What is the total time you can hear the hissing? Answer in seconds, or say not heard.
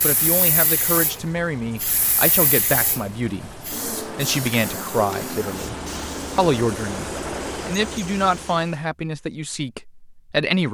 9 s.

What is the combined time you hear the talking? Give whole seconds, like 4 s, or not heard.
10 s.